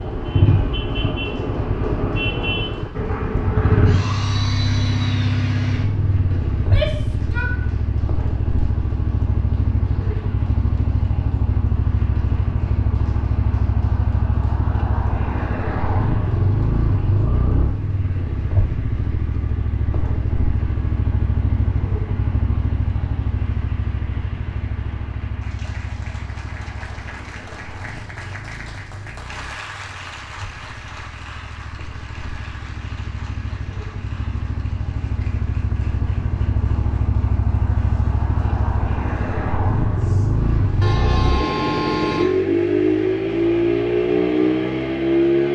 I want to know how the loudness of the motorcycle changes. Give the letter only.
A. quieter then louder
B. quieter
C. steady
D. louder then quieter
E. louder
A.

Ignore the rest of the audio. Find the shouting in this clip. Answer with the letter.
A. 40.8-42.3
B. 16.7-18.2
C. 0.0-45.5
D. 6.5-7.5
D.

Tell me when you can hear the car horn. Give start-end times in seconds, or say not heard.
40.8-42.3.